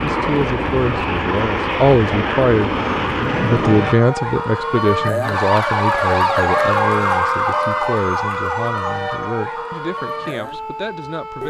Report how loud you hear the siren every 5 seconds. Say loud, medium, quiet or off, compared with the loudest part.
medium, loud, medium.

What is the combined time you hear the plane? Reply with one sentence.
You can hear the plane for 4 seconds altogether.